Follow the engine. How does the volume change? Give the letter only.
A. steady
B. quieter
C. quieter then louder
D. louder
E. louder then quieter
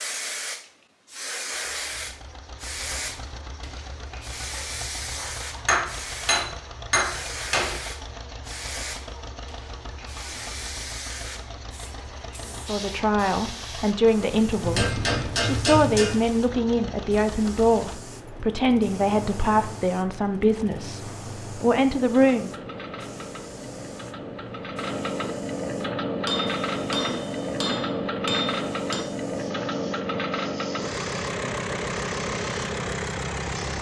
D.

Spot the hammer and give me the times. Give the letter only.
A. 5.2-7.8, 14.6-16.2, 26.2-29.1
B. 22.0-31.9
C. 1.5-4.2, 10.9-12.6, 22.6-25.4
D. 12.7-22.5
A.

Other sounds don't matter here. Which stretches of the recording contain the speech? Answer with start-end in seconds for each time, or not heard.
12.7-22.5.